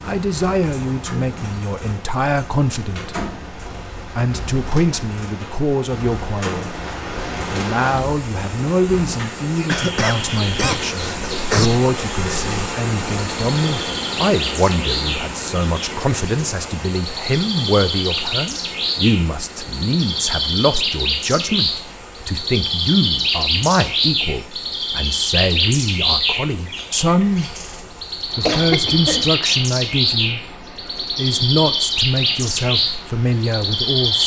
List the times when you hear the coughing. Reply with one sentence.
The coughing can be heard from 9.7 to 11.7 s and from 28.4 to 29.3 s.